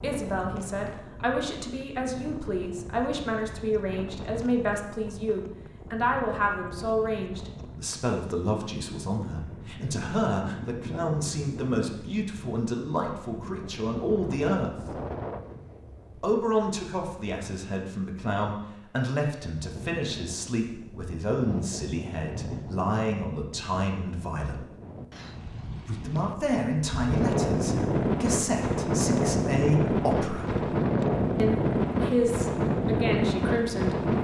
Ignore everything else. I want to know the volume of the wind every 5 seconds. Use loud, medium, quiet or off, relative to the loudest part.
quiet, quiet, quiet, quiet, quiet, loud, loud.